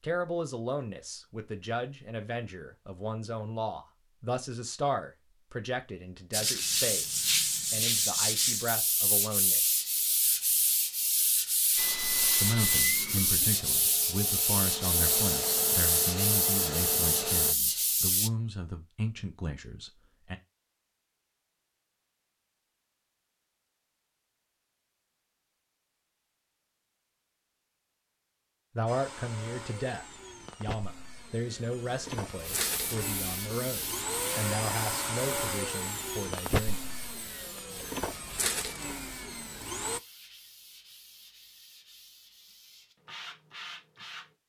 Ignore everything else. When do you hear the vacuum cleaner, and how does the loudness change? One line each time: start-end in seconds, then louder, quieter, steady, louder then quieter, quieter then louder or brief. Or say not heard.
11.8-17.6 quieter then louder
28.9-40.0 louder.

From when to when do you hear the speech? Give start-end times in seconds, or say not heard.
0.0-9.8, 12.4-20.4, 28.8-36.8.